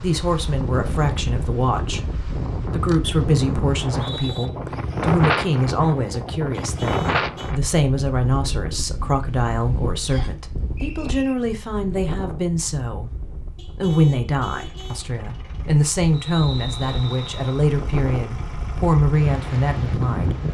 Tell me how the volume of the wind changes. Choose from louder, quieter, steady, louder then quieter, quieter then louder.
quieter then louder.